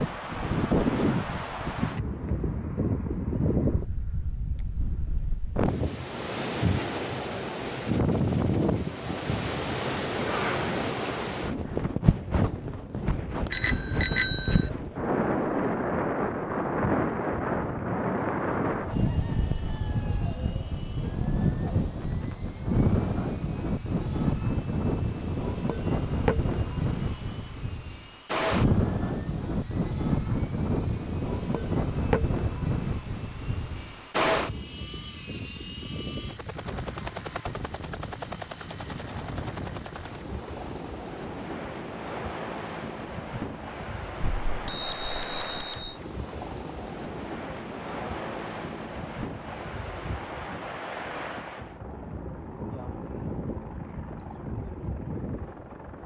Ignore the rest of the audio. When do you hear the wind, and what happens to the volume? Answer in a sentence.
The wind can be heard from 0.0 to 56.0 s, getting quieter.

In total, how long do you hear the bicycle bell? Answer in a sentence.
The bicycle bell can be heard for 3 seconds in total.